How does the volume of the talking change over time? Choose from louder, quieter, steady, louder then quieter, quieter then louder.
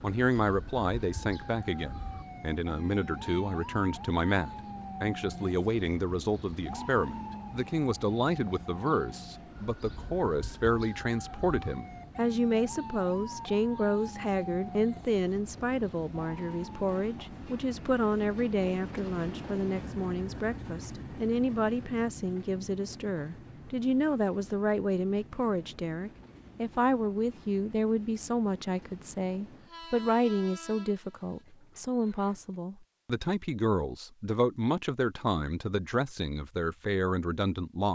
steady.